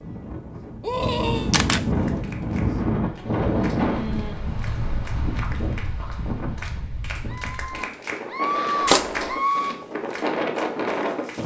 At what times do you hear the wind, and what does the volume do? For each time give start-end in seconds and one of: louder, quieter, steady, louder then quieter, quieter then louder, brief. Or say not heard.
0.0-11.4 quieter then louder.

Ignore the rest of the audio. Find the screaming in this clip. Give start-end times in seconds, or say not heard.
0.8-1.5, 7.2-9.8.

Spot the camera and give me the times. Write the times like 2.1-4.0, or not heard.
1.1-1.9, 8.8-9.3.